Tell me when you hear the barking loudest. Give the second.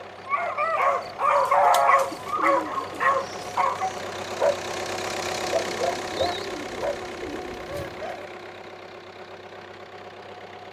2 s.